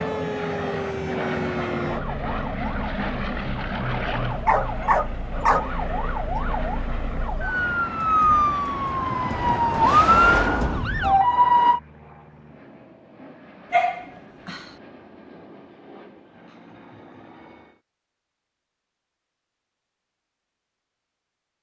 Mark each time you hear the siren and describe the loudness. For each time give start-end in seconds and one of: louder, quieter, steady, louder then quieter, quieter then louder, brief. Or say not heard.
0.0-11.8 louder.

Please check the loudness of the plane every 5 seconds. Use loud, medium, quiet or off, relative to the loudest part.
loud, medium, quiet, quiet, off.